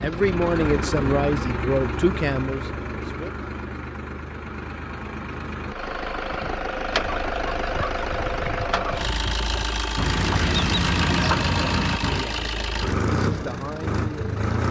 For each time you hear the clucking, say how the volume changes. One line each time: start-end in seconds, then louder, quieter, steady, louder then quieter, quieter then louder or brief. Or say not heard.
7.2-12.2 louder.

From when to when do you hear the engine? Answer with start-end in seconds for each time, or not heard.
0.0-14.6.